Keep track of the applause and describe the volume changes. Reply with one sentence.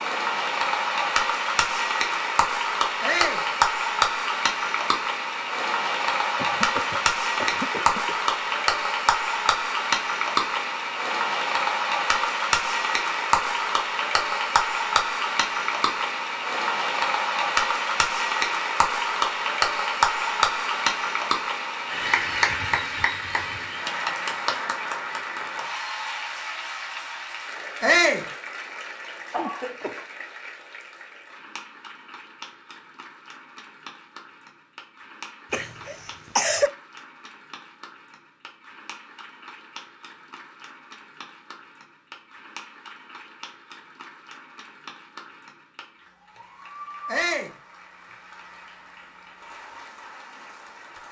The volume of the applause goes down.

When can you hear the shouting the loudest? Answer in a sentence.
The volume of the shouting peaks at 28 seconds.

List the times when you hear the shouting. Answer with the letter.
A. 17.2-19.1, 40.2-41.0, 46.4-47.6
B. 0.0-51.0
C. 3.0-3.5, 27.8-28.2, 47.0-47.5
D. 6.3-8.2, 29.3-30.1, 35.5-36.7
C.